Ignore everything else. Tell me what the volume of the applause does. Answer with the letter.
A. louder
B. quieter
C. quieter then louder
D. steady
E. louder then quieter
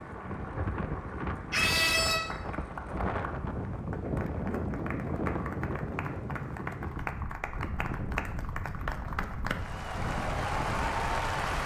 A.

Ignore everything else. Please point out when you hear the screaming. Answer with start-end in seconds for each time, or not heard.
1.5-2.2.